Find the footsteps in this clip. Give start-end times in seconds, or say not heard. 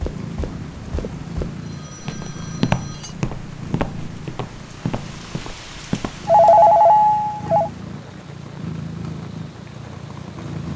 0.0-6.2.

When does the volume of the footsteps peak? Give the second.
3 s.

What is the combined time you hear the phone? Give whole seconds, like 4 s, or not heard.
4 s.